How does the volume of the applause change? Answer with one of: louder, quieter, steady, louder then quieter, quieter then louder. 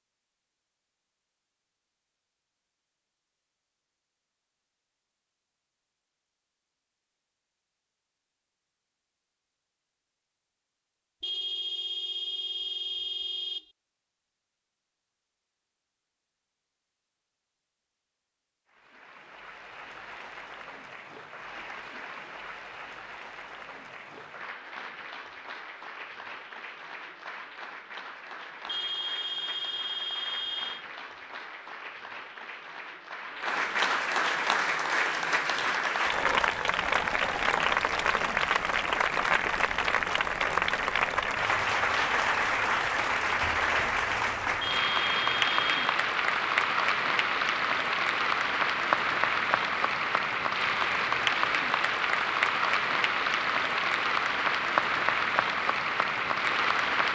louder.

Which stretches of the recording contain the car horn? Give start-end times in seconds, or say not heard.
11.2-13.7, 28.6-30.9, 44.6-45.8.